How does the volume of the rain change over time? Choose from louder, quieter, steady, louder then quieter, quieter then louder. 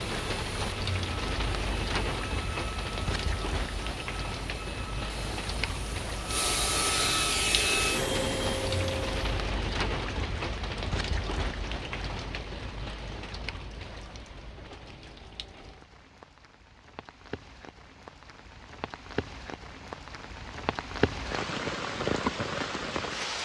quieter then louder.